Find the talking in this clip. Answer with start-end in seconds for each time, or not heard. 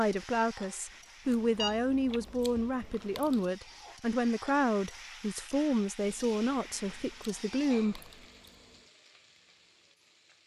0.0-8.1.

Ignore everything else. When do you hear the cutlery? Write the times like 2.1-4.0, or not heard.
not heard.